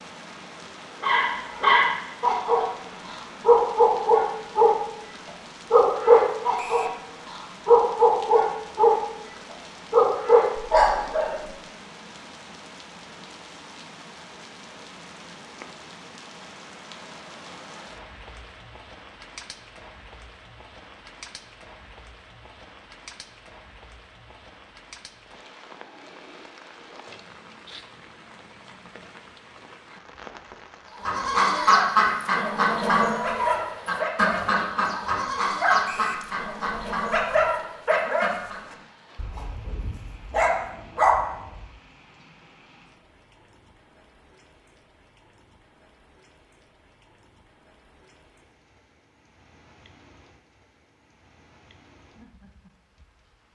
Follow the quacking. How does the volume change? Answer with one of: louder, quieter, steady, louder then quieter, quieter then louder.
quieter.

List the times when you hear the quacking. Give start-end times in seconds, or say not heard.
31.0-38.6.